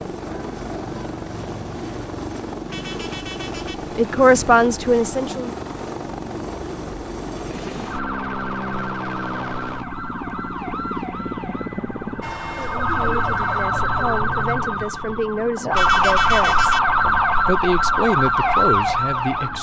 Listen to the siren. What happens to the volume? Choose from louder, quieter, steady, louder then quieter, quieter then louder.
louder.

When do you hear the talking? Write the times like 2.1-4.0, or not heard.
4.0-5.5, 12.5-19.5.